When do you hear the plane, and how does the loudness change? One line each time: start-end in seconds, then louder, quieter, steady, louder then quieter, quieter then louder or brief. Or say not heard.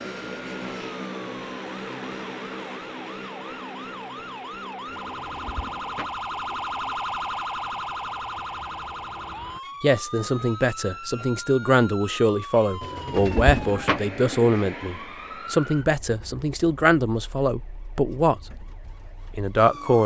0.0-9.6 quieter.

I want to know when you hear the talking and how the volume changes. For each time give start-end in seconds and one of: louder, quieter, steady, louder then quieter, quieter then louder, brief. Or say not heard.
9.8-18.6 steady
19.4-20.0 brief.